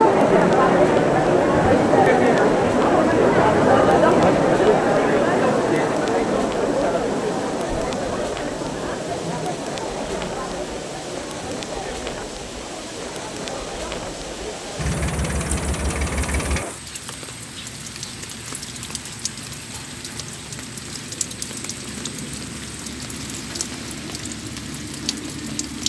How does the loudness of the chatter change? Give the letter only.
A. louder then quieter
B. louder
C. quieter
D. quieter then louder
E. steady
C.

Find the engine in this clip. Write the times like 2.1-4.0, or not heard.
14.8-16.6.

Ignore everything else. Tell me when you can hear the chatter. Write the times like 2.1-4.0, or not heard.
0.0-16.8.